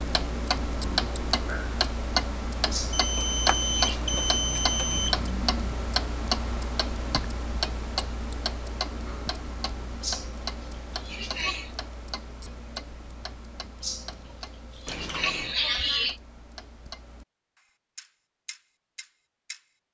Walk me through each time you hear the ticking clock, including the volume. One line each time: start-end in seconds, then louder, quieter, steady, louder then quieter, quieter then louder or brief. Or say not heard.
0.0-19.6 quieter.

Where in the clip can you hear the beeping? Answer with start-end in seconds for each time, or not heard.
2.9-5.2, 14.8-15.6.